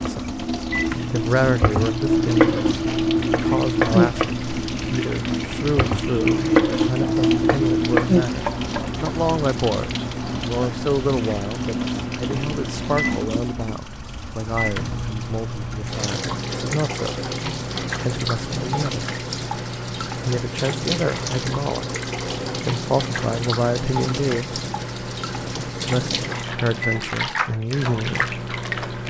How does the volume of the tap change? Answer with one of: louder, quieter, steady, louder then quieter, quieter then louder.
steady.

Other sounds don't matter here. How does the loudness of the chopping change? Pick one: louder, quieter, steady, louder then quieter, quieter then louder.
louder.